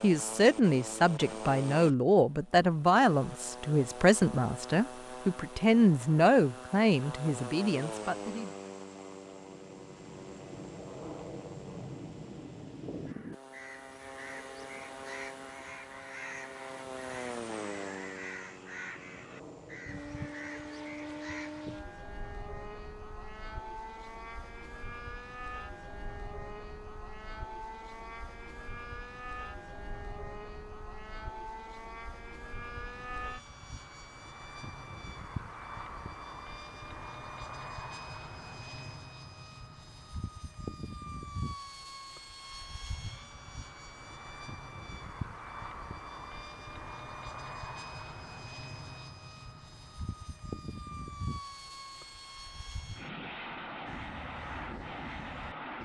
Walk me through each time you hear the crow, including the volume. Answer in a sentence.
The crow can be heard from 12.8 to 21.6 s, at a steady volume; and briefly from 53.9 to 55.8 s.